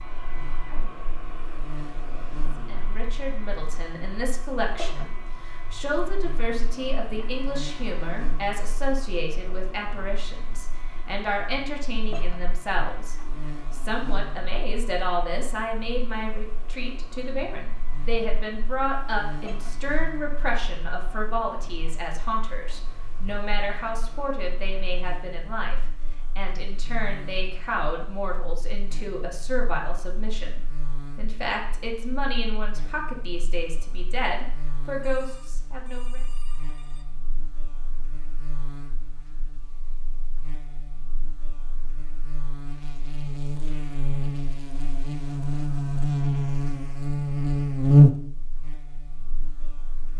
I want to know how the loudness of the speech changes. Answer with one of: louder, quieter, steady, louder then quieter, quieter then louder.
steady.